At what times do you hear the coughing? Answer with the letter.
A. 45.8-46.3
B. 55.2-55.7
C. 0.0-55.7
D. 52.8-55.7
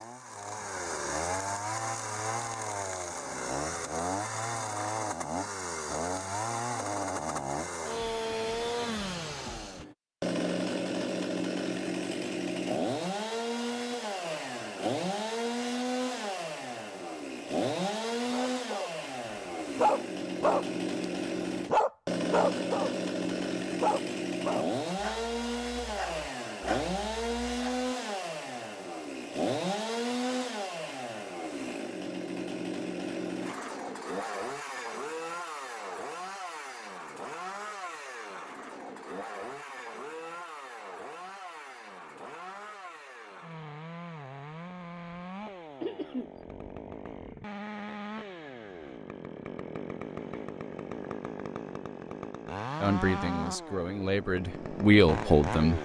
A.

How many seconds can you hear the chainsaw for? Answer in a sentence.
You can hear the chainsaw for 56 seconds altogether.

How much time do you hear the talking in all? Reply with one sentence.
The talking can be heard for 3 seconds in total.